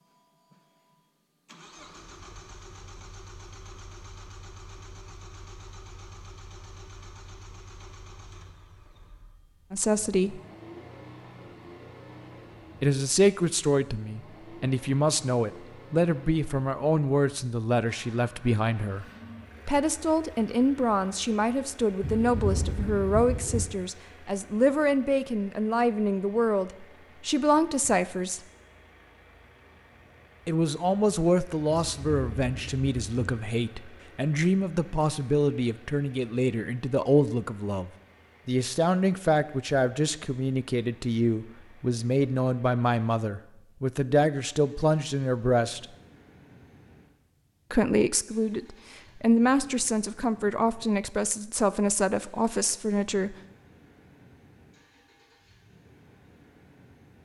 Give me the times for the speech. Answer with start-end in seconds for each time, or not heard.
9.7-10.4, 12.8-19.1, 19.6-28.4, 30.4-45.9, 47.7-53.4.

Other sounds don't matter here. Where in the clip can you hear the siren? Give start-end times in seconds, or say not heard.
not heard.